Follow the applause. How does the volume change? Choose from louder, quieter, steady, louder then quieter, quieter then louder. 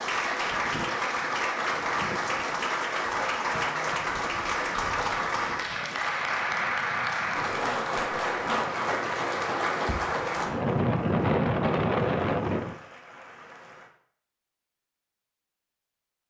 quieter.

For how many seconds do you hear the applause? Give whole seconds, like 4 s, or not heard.
14 s.